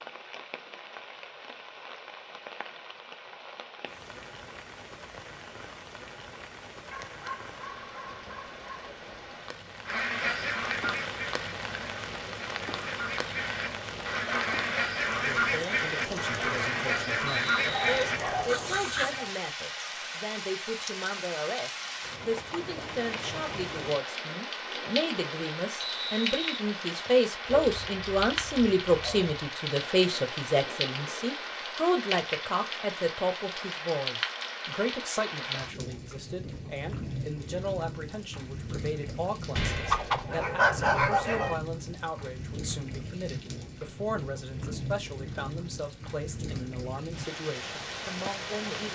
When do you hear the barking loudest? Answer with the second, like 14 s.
41 s.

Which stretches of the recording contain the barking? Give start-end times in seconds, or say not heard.
6.9-8.9, 17.6-19.4, 27.4-29.4, 39.5-41.5.